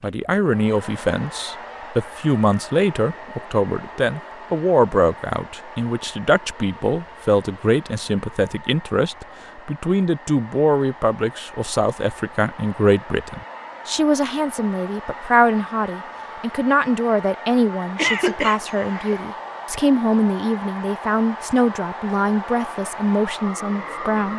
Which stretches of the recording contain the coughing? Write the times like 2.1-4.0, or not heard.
17.9-19.2.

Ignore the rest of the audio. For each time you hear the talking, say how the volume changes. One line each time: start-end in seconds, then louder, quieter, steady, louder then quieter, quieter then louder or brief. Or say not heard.
0.0-24.3 steady.